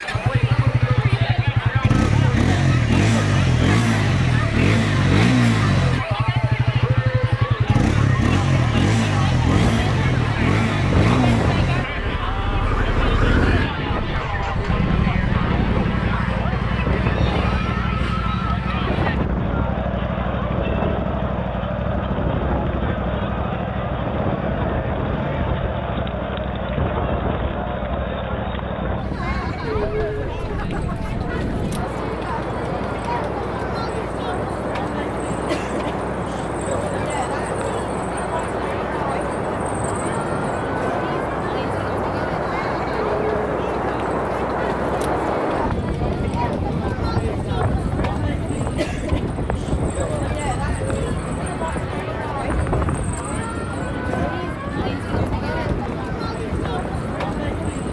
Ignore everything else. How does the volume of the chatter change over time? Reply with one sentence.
The loudness of the chatter stays about the same.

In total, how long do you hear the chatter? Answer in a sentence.
You can hear the chatter for 58 seconds altogether.